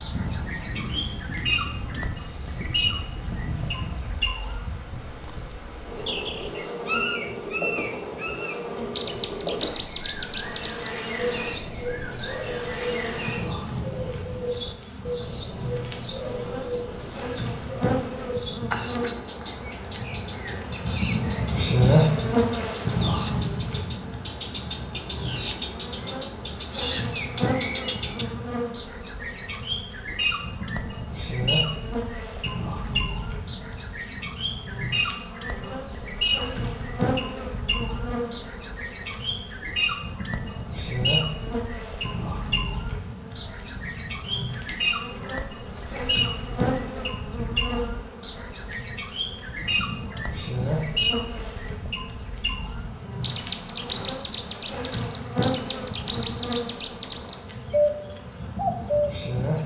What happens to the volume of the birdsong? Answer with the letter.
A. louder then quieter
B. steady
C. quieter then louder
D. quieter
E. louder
B.